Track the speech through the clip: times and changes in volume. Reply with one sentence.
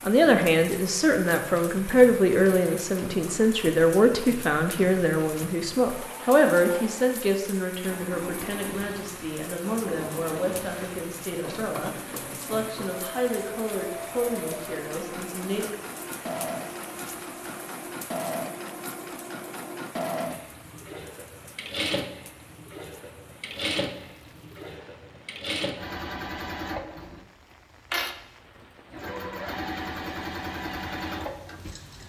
The speech can be heard from 0.0 to 15.7 s, getting quieter.